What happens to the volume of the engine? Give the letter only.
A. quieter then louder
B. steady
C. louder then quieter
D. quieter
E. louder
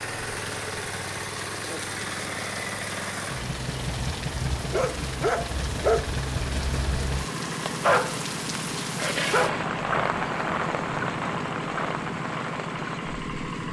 B.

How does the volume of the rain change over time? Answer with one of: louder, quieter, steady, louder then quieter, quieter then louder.
louder.